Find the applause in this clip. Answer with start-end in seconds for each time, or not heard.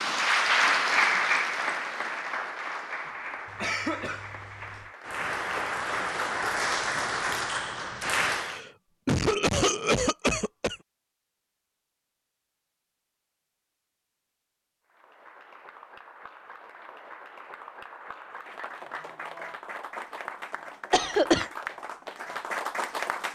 0.0-8.6, 14.8-23.3.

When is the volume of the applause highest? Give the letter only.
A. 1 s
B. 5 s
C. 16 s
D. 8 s
A.